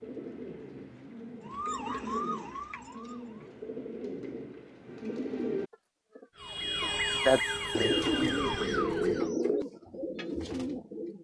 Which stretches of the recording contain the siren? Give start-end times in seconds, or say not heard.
1.4-3.5, 6.3-9.3.